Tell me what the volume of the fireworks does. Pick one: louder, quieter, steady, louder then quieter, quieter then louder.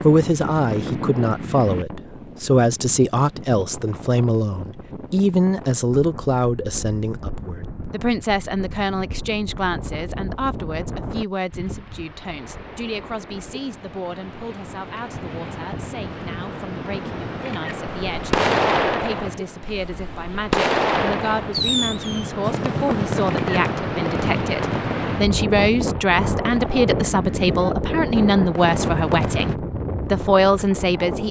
quieter.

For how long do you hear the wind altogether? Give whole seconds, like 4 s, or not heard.
31 s.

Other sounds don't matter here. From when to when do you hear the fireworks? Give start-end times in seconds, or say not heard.
18.1-29.6.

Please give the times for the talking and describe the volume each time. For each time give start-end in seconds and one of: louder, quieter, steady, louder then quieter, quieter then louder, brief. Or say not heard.
0.0-31.2 quieter then louder.